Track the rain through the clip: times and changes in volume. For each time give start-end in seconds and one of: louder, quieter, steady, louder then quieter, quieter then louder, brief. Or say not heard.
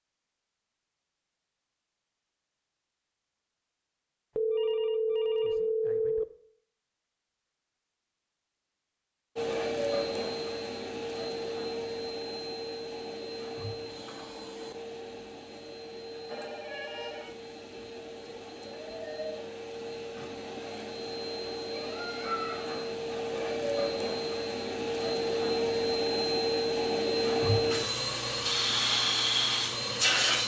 not heard.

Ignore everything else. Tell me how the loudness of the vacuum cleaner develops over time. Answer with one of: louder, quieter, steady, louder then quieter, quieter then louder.
quieter then louder.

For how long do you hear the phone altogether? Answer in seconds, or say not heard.
3 s.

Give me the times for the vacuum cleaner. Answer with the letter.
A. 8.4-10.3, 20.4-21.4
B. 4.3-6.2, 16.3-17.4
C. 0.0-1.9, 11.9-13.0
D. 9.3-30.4
D.